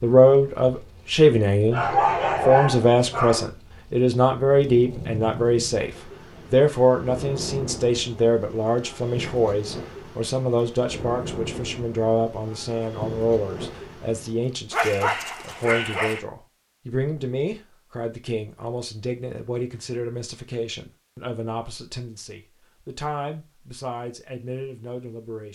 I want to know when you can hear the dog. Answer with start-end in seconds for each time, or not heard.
1.7-3.5, 14.7-16.2.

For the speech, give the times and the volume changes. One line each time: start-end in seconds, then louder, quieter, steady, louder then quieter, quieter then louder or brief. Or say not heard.
0.0-25.5 quieter.